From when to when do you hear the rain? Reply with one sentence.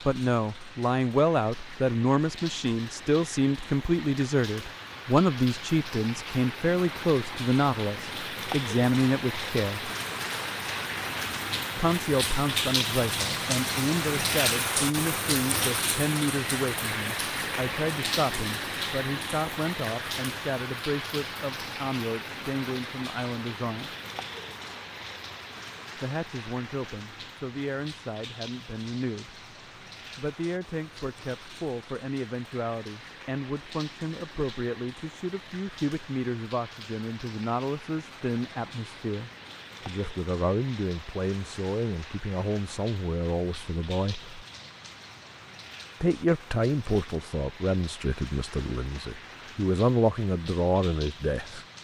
You can hear the rain from 0.0 to 51.7 s.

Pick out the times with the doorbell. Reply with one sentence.
You can't hear the doorbell here.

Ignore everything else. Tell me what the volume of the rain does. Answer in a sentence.
The volume of the rain goes up, then down.